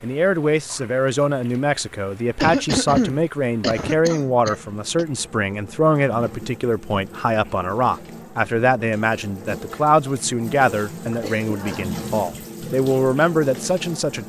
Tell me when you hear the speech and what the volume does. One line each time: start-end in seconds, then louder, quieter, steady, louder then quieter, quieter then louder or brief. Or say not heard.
0.0-14.2 steady.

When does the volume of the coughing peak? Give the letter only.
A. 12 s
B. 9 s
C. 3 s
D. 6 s
C.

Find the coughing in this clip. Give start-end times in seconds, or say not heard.
2.4-5.0, 11.1-11.8.